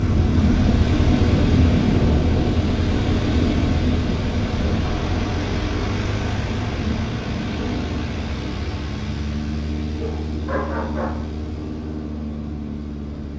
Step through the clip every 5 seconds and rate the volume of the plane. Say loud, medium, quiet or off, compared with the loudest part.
loud, medium, medium.